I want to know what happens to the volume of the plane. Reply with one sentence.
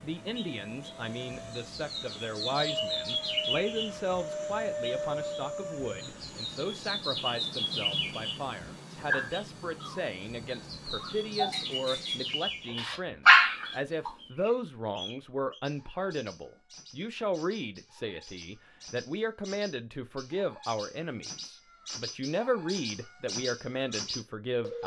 The volume of the plane goes up, then down.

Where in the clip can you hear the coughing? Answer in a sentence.
The coughing can't be heard in this clip.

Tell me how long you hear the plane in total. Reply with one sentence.
You can hear the plane for 13 seconds altogether.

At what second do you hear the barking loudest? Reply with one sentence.
The volume of the barking peaks at 13 seconds.